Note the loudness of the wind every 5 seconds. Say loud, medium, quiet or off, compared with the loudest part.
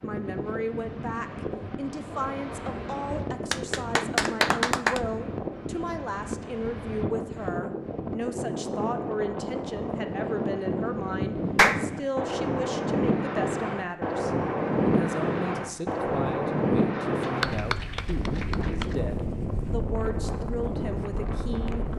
medium, medium, loud, loud, medium.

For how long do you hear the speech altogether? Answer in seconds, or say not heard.
22 s.